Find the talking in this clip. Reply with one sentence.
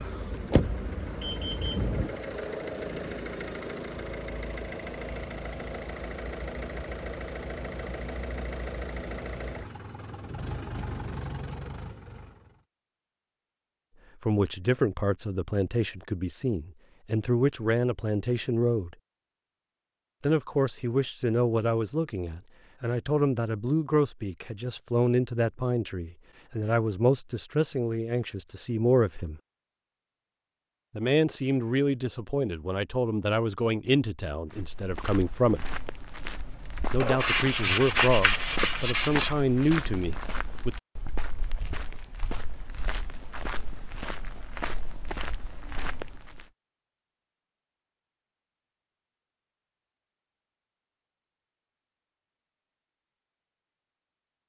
The talking can be heard from 14.2 to 18.9 s, from 20.2 to 29.4 s, from 30.9 to 35.7 s and from 36.9 to 40.8 s.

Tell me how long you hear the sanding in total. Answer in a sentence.
The sanding can be heard for 2 seconds in total.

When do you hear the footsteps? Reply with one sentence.
The footsteps can be heard from 34.5 to 46.5 s.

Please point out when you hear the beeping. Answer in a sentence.
You can hear the beeping from 1.1 to 1.9 s.